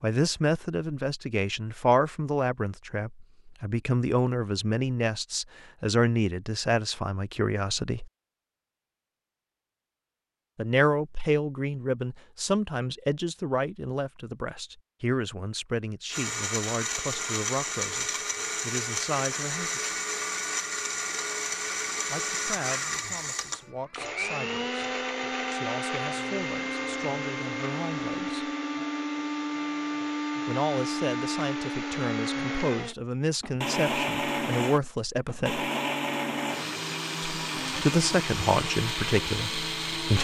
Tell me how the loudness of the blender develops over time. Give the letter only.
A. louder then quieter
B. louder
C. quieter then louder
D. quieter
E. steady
E.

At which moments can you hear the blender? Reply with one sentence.
You can hear the blender from 16.1 to 40.1 s.